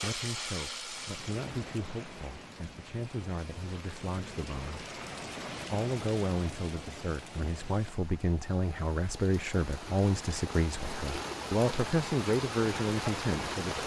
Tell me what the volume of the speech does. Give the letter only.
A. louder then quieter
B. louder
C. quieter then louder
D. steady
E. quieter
B.